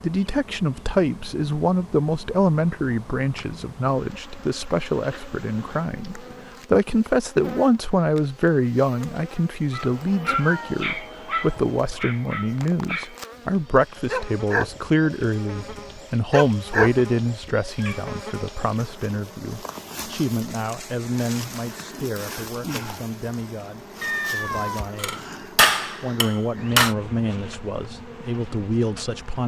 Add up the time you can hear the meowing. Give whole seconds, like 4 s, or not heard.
2 s.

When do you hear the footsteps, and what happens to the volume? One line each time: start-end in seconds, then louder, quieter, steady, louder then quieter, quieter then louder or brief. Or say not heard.
not heard.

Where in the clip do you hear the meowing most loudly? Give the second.
24 s.